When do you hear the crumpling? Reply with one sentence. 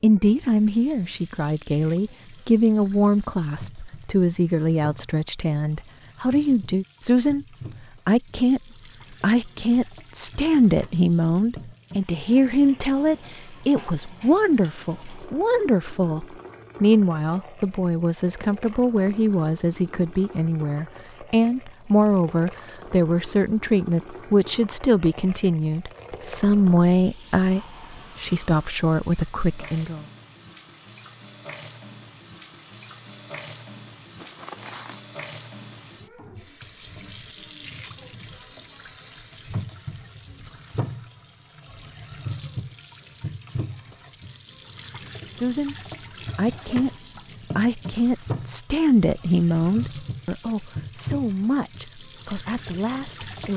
The crumpling can be heard from 34.1 to 35.0 s.